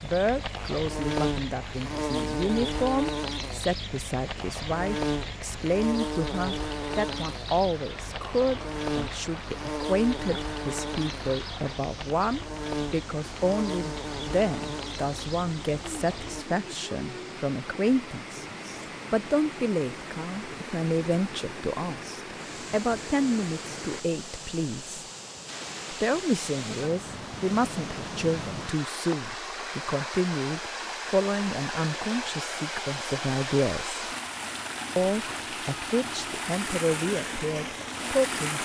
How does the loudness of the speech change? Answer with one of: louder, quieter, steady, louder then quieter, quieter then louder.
steady.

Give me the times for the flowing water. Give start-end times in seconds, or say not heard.
0.0-38.6.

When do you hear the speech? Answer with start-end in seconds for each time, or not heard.
0.0-25.1, 25.9-34.0, 35.0-38.6.